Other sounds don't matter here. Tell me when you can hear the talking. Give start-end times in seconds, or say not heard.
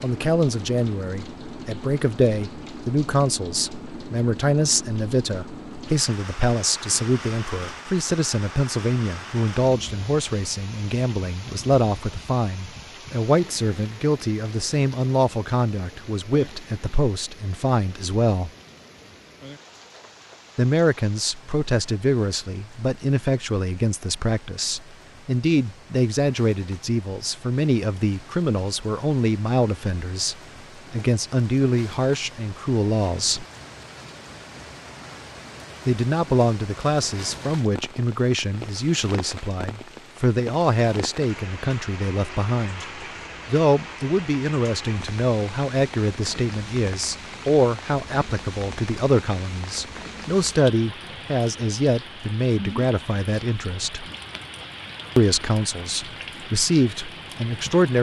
0.0-18.5, 20.6-33.5, 35.9-54.0, 55.1-57.9.